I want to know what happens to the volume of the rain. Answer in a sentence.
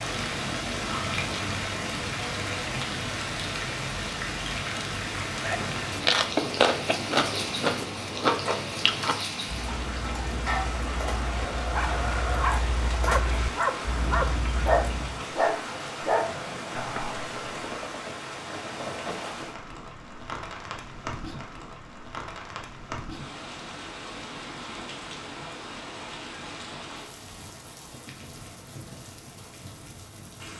The loudness of the rain goes down.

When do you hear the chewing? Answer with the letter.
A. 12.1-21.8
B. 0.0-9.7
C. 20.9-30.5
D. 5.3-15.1
D.